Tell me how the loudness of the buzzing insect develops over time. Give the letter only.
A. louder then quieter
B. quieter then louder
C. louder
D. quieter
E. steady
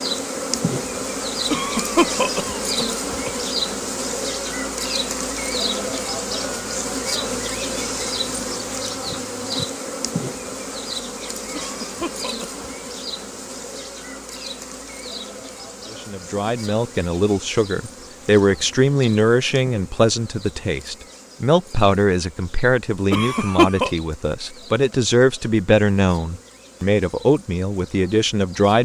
D.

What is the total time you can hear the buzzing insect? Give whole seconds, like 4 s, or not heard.
29 s.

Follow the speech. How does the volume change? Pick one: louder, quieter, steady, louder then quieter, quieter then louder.
steady.